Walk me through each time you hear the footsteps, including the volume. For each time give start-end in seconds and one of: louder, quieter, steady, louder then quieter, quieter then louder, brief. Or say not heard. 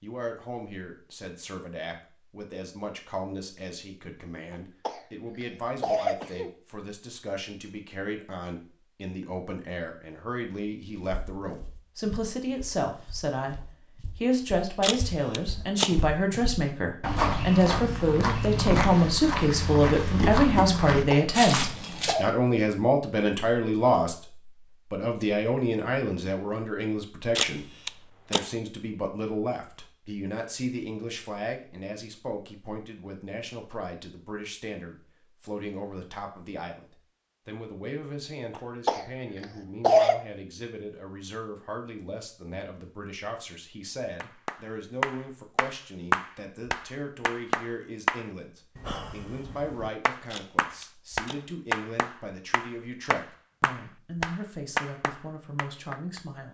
11.0-22.1 louder.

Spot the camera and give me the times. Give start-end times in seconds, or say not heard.
14.8-16.0, 27.4-28.5, 50.3-51.5.